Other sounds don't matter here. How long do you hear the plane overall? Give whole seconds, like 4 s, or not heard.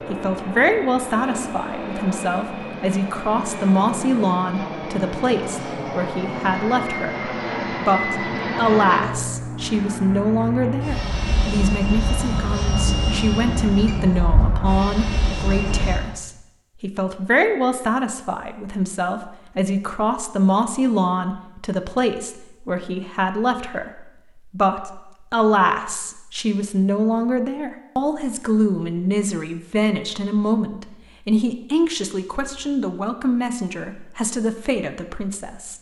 16 s.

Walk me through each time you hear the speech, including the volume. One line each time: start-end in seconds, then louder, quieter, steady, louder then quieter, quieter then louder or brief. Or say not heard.
0.1-35.7 steady.